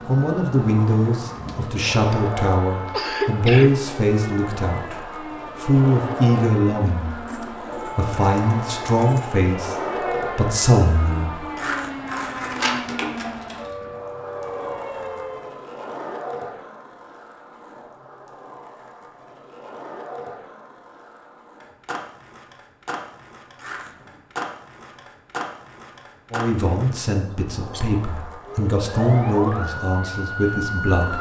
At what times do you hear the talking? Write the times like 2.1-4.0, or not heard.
0.1-11.4, 26.3-31.1.